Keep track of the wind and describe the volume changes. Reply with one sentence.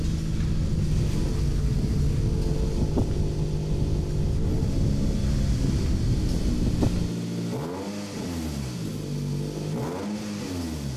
The loudness of the wind stays about the same.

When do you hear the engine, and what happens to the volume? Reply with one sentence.
You can hear the engine from 0.0 to 10.9 s, at a steady volume.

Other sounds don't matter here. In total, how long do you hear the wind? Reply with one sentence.
The wind can be heard for 7 seconds in total.